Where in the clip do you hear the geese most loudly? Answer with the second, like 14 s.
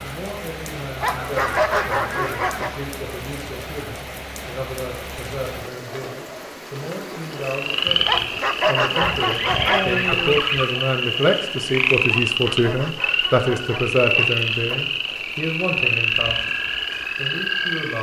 10 s.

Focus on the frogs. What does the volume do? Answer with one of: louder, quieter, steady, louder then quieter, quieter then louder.
steady.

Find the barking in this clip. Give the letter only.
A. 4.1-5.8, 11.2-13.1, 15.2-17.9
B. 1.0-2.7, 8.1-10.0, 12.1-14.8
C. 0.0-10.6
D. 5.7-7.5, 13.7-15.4
B.